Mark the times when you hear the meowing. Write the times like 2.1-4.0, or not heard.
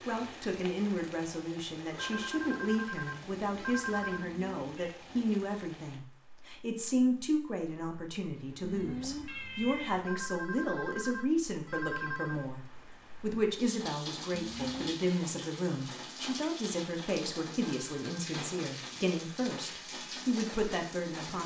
4.1-5.0, 8.6-10.1, 14.3-15.0.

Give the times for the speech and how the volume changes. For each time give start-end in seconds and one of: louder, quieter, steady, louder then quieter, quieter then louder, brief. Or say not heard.
0.1-21.4 steady.